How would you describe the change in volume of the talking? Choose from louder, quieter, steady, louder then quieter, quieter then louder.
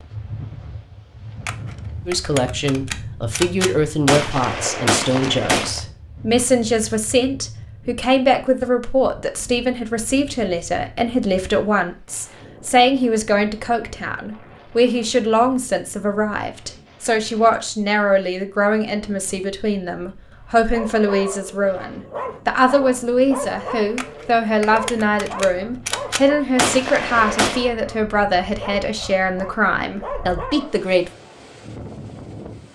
steady.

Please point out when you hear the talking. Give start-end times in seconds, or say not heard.
2.0-31.1.